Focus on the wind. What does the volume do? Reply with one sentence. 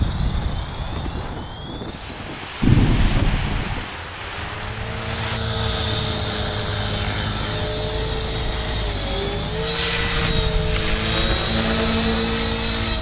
The volume of the wind goes up, then down.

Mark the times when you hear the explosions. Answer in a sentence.
You can hear the explosions from 2.6 to 3.9 s.